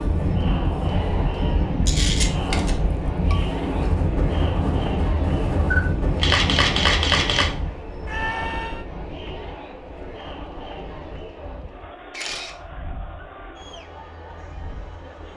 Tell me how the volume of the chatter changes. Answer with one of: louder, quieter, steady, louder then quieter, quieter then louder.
quieter.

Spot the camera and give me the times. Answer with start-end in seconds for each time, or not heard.
1.9-2.8, 5.7-7.5, 12.1-12.6.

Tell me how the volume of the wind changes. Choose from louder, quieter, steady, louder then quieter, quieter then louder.
quieter.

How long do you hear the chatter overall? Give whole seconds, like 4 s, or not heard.
15 s.